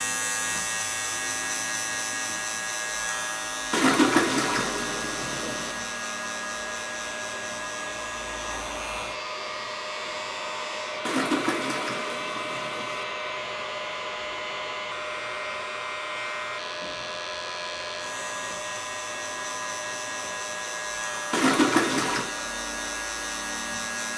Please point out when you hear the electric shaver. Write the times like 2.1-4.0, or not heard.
0.0-24.1.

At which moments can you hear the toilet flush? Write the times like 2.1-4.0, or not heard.
3.7-5.8, 11.1-13.1, 21.3-22.3.